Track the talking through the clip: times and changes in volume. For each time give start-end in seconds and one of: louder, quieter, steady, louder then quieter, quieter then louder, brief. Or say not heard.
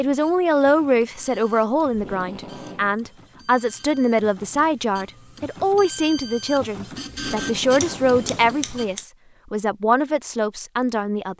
0.0-11.3 steady.